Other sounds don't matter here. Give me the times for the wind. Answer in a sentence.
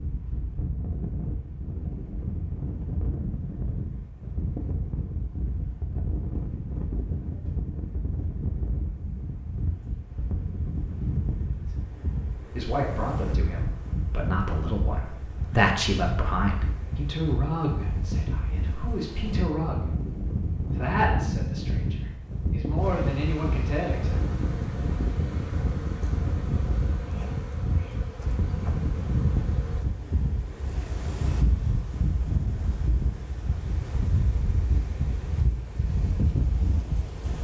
The wind can be heard from 0.0 to 37.3 s.